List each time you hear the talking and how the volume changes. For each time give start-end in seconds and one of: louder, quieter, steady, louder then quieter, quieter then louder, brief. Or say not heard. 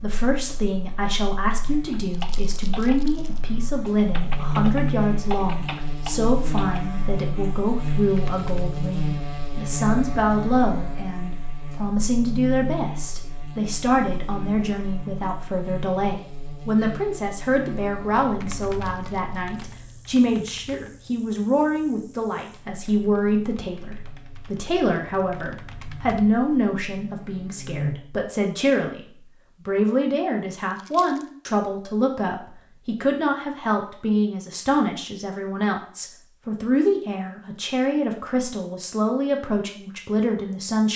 0.0-29.0 steady
29.6-40.9 steady.